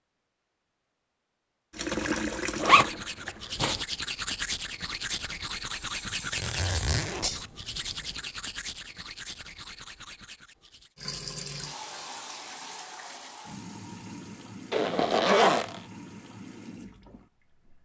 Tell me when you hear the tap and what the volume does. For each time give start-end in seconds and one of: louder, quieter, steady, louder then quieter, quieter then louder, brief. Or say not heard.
1.7-3.7 brief
10.9-17.7 quieter.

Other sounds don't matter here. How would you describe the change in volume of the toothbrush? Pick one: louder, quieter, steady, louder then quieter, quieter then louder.
quieter.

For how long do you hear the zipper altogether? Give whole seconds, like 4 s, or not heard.
4 s.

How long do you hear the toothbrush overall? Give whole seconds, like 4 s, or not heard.
8 s.